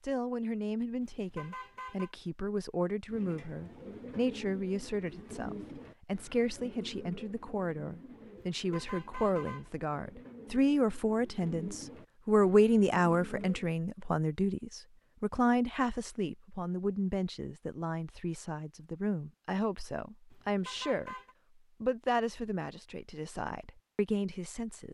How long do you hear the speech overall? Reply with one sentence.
The speech can be heard for 24 seconds in total.